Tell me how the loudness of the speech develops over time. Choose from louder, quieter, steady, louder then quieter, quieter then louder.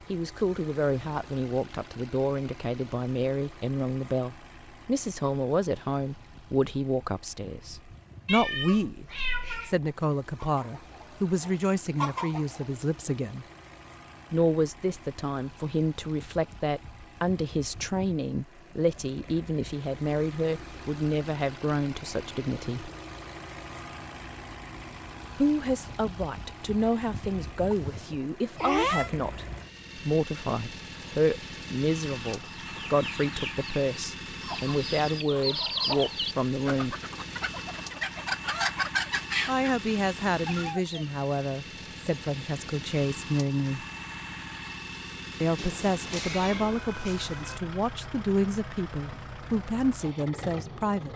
steady.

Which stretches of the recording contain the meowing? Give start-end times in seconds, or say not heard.
8.2-9.8, 27.7-29.1, 45.5-47.6.